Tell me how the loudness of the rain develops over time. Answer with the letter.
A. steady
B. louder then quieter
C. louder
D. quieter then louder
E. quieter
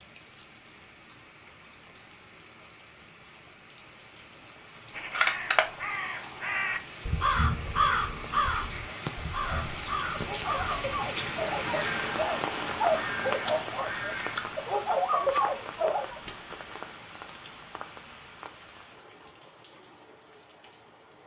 B.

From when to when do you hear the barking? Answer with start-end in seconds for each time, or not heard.
9.3-16.2.